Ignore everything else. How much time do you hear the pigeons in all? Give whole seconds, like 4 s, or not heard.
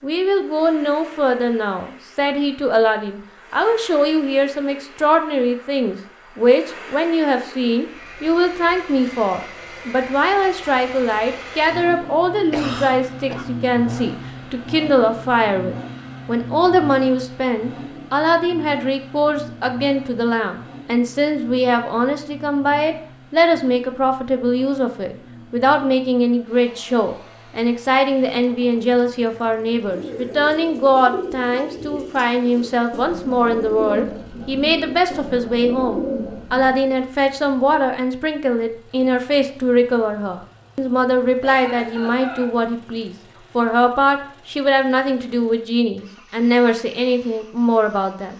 7 s.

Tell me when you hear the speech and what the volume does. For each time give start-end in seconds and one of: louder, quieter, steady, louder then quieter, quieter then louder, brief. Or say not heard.
0.0-48.3 steady.